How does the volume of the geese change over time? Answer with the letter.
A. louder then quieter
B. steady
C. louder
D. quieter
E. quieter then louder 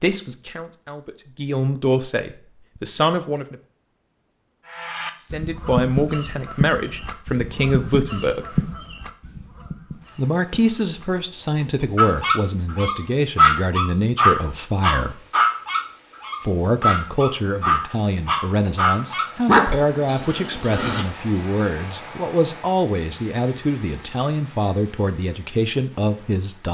D.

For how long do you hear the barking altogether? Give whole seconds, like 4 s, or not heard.
9 s.